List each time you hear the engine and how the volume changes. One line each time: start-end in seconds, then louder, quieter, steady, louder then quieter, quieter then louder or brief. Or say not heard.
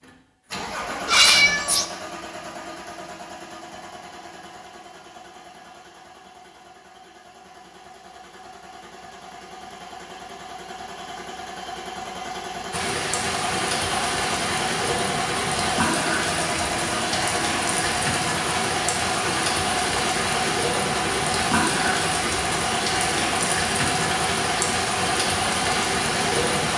0.0-26.7 quieter then louder.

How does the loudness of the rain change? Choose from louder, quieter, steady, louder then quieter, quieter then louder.
steady.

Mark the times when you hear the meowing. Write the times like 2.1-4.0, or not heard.
1.1-1.9.